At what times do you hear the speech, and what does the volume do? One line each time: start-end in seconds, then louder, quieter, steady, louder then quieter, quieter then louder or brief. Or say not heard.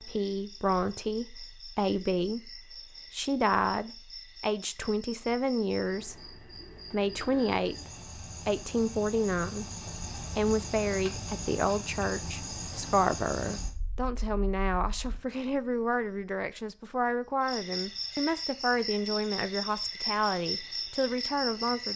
0.0-21.9 steady.